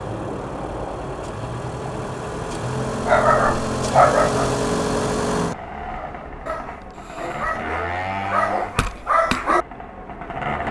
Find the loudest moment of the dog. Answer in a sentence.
The volume of the dog peaks at 4 seconds.